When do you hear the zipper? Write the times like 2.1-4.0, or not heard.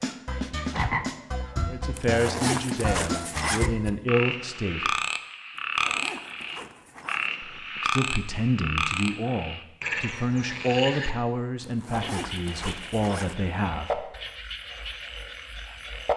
1.9-3.7, 5.5-7.3, 11.6-13.3.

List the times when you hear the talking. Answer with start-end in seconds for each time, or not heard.
1.6-5.0, 7.6-14.1.